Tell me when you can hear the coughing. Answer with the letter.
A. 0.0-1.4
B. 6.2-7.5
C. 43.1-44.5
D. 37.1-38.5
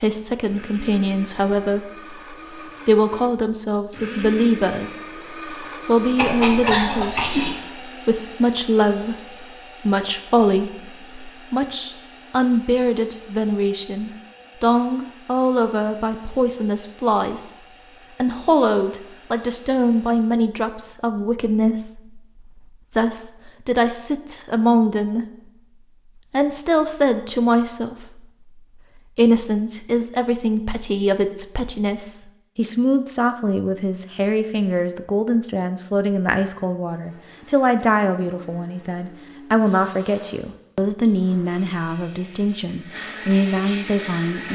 B.